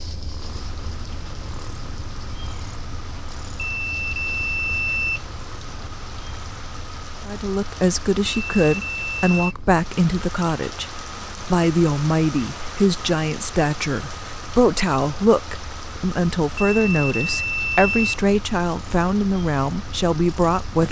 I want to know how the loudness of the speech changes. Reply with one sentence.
The volume of the speech stays about the same.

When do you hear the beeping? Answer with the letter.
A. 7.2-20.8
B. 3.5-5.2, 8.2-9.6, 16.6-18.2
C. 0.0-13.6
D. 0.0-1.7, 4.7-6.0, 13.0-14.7
B.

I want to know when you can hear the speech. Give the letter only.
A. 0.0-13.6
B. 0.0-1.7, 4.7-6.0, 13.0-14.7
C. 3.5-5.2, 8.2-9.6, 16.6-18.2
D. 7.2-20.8
D.